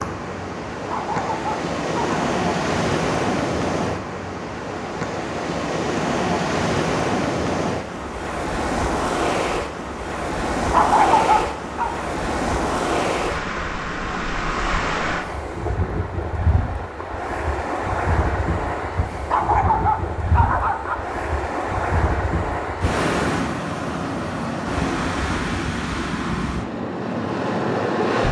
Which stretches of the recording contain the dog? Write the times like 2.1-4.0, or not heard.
0.8-2.2, 10.6-11.9, 19.1-20.9.